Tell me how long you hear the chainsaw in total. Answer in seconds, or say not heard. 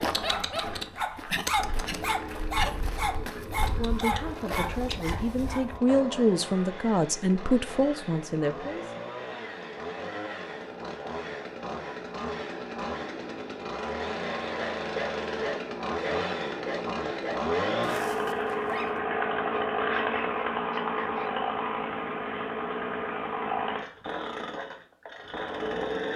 26 s.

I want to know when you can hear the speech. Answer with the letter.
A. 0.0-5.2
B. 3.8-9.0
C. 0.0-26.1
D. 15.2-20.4
B.